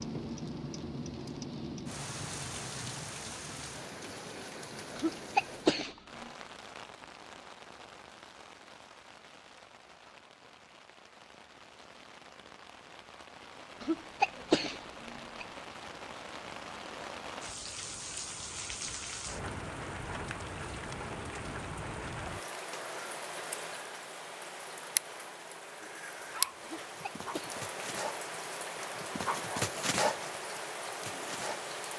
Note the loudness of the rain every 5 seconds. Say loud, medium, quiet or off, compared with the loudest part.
loud, medium, medium, loud, loud, loud, loud.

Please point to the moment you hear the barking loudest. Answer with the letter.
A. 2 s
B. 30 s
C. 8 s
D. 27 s
B.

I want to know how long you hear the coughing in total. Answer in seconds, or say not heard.
4 s.